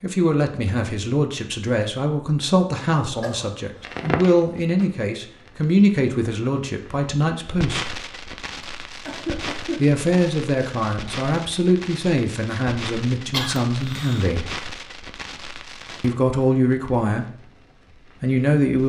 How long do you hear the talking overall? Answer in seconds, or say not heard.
15 s.